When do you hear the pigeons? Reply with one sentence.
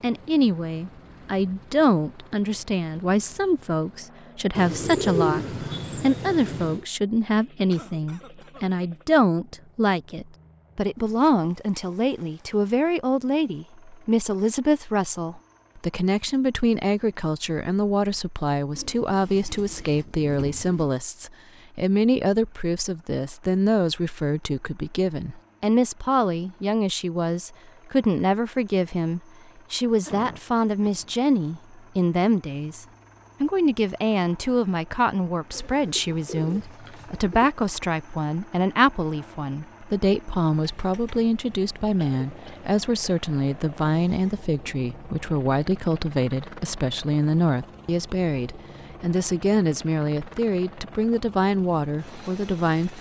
The pigeons can be heard from 4.5 to 6.8 s, from 18.7 to 20.9 s and from 35.5 to 37.5 s.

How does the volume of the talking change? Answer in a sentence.
The loudness of the talking stays about the same.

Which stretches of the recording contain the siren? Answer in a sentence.
The siren can't be heard in this clip.